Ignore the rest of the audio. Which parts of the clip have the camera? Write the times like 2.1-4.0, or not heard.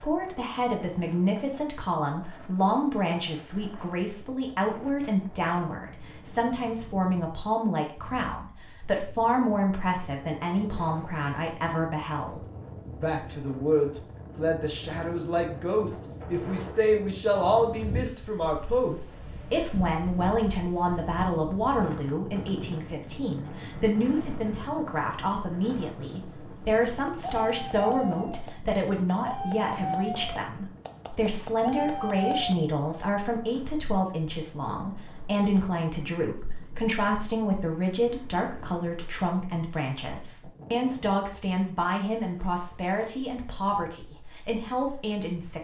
not heard.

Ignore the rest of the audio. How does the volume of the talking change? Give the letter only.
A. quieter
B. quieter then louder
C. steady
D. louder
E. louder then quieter
C.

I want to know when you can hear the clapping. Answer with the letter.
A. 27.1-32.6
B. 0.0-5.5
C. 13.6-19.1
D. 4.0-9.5
A.